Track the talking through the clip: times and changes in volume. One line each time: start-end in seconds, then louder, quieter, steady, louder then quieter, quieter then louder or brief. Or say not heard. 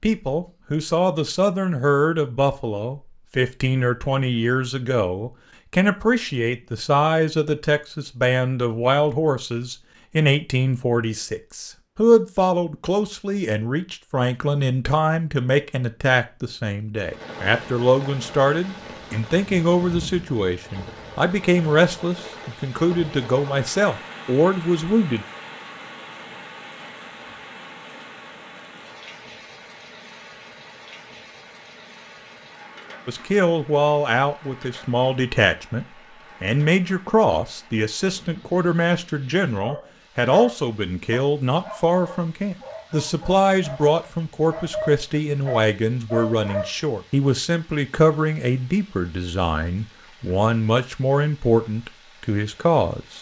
0.0-25.2 steady
33.0-53.1 steady.